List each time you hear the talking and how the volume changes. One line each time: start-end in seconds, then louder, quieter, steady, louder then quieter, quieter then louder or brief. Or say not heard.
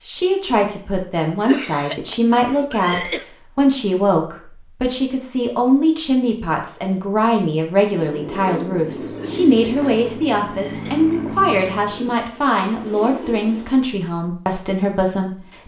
0.0-15.6 steady.